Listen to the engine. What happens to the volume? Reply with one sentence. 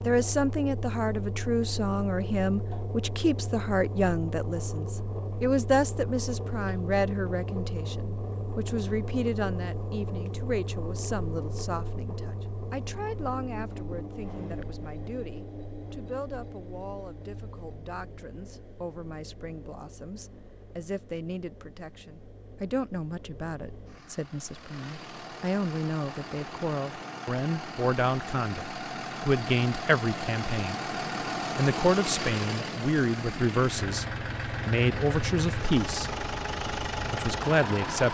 The loudness of the engine goes down, then up.